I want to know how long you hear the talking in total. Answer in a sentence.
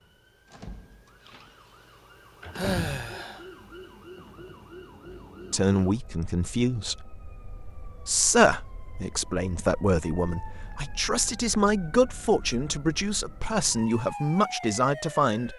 You can hear the talking for 9 seconds altogether.